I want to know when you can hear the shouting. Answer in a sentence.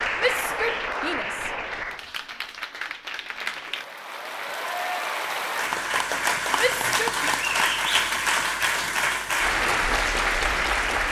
The shouting can be heard from 0.1 to 1.5 s and from 6.5 to 7.2 s.